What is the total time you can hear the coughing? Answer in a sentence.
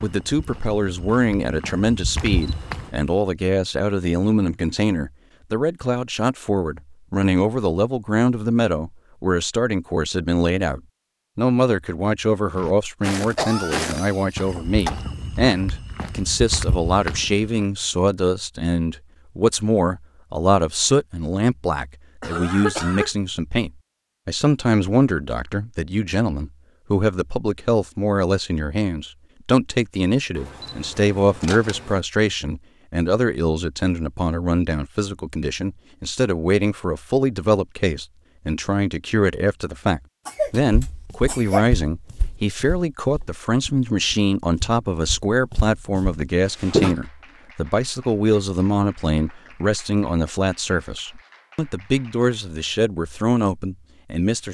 You can hear the coughing for 4 seconds altogether.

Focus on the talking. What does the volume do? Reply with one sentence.
The loudness of the talking stays about the same.